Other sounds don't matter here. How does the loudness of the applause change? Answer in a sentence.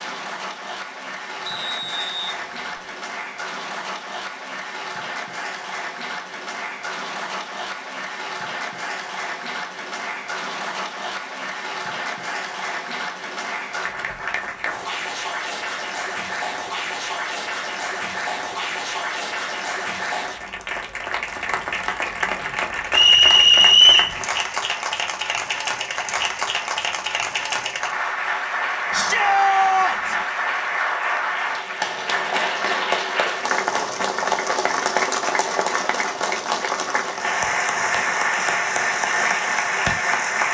The volume of the applause goes up.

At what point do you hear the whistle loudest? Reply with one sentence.
The loudest moment of the whistle is at 24 seconds.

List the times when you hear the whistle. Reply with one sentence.
You can hear the whistle from 1.4 to 2.9 s and from 22.9 to 24.1 s.